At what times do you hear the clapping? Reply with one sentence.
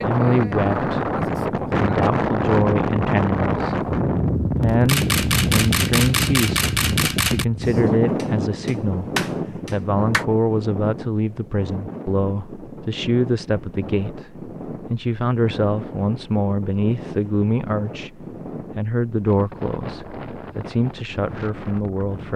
The clapping can be heard from 7.6 to 10.2 s.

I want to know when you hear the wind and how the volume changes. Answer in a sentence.
The wind can be heard from 0.0 to 22.3 s, getting quieter.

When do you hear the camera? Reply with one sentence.
The camera can be heard from 4.8 to 7.5 s.